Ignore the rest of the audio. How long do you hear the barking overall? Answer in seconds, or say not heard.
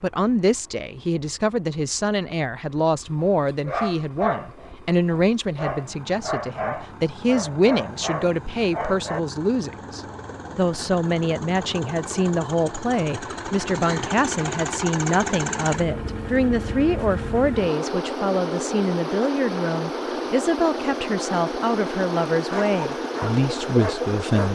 8 s.